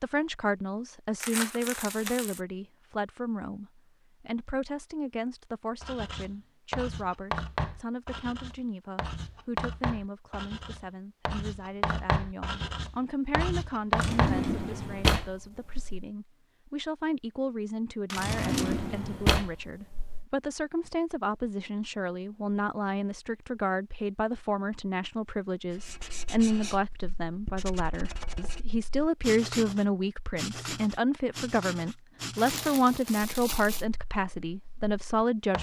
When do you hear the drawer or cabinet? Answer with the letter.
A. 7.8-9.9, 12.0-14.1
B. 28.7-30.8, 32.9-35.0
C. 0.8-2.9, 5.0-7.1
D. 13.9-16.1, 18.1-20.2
D.